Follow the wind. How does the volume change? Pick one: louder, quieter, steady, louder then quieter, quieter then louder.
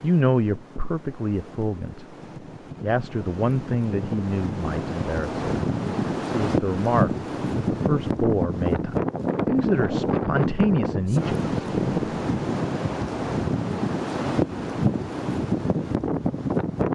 louder.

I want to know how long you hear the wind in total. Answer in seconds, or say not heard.
17 s.